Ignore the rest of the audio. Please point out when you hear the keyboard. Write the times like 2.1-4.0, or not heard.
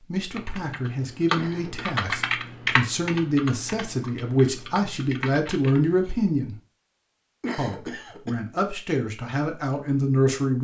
0.3-6.3.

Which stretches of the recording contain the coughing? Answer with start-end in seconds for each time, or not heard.
1.4-1.9, 7.4-8.3.